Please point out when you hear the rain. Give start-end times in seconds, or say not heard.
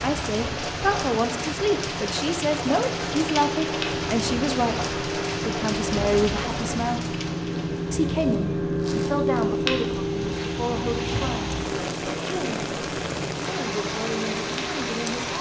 0.0-15.3.